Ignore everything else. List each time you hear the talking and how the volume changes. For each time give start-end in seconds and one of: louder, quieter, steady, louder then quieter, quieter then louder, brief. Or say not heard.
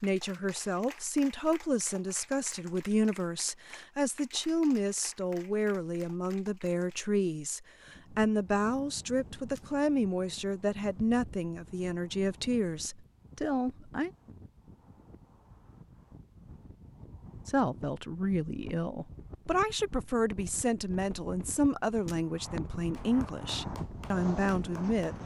0.0-14.1 steady
17.4-25.1 steady.